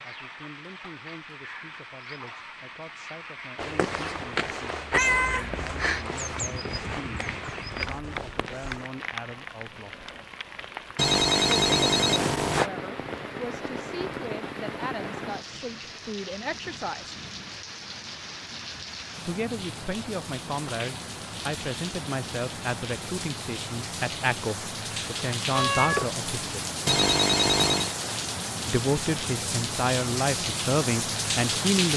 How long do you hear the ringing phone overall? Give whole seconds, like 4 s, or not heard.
3 s.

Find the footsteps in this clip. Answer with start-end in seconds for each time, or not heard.
3.5-8.9.